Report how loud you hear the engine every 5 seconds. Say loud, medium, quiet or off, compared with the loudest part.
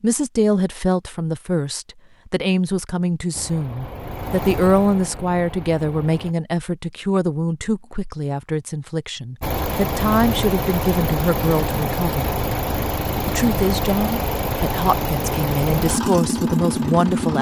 medium, medium, loud, loud.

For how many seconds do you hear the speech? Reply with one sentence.
The speech can be heard for 16 seconds in total.